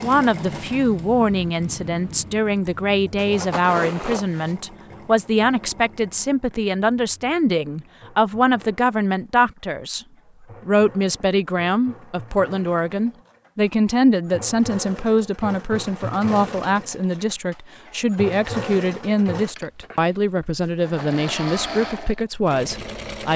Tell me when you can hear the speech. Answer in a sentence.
You can hear the speech from 0.0 to 10.1 s and from 10.7 to 23.3 s.